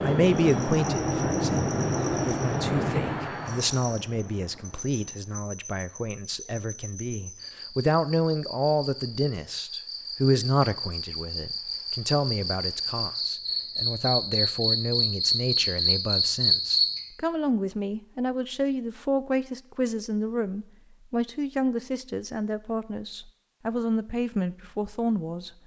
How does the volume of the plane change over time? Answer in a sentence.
The loudness of the plane goes down.